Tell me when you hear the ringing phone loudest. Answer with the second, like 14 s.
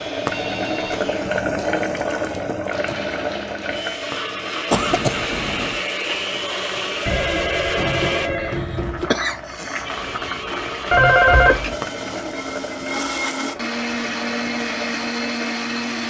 11 s.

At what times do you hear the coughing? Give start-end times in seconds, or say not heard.
4.7-5.8, 9.1-9.9.